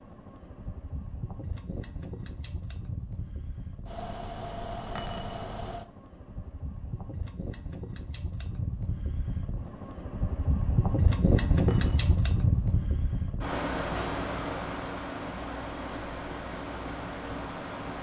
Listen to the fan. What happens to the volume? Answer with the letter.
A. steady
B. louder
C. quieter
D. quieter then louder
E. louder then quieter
E.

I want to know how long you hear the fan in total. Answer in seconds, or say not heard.
18 s.